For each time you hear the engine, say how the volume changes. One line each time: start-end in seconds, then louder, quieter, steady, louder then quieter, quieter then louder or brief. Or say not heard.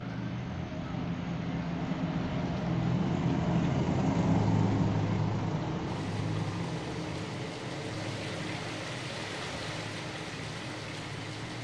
0.0-11.6 louder then quieter.